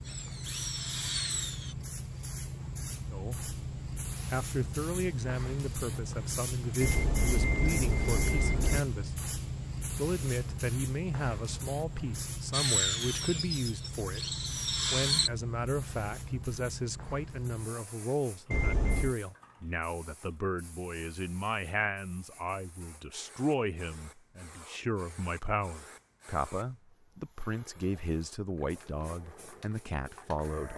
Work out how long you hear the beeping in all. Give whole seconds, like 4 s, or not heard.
3 s.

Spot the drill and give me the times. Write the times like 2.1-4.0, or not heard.
0.0-1.8, 12.5-15.3.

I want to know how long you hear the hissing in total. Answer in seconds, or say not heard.
31 s.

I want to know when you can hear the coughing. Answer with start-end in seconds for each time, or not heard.
not heard.